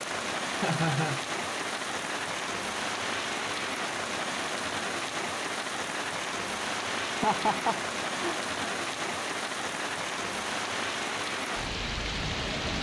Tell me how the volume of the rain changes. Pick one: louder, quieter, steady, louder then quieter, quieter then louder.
steady.